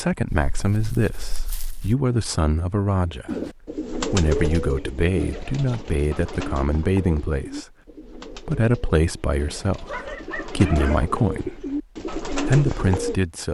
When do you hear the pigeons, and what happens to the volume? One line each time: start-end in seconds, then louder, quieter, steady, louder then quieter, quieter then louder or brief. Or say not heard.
3.2-13.2 quieter then louder.